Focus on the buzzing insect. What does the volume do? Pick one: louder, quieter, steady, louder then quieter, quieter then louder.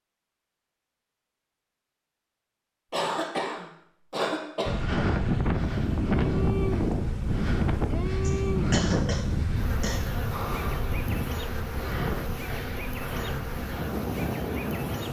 steady.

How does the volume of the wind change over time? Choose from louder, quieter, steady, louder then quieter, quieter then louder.
quieter.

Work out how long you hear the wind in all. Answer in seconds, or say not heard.
10 s.